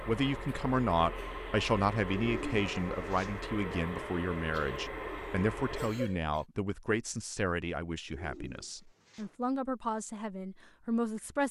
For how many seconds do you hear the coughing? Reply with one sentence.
You can hear the coughing for 2 seconds altogether.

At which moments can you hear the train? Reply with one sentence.
The train can be heard from 0.0 to 6.0 s.